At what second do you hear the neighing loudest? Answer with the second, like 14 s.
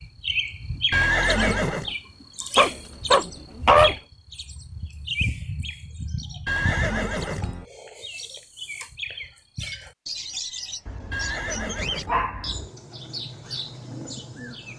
1 s.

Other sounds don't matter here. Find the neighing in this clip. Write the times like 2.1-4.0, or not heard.
0.9-1.9, 6.5-7.7, 11.1-12.3.